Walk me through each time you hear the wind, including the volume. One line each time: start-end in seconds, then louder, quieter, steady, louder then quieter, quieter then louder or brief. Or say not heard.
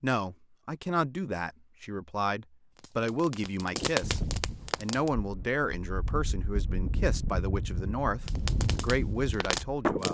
4.0-10.0 louder.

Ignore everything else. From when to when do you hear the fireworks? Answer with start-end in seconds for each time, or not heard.
2.8-5.1, 8.2-10.0.